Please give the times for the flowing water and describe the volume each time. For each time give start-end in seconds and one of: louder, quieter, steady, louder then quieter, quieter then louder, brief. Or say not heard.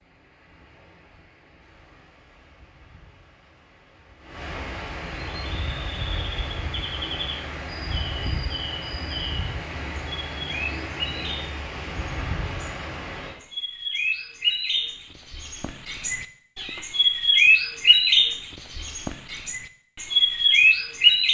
0.0-13.3 louder.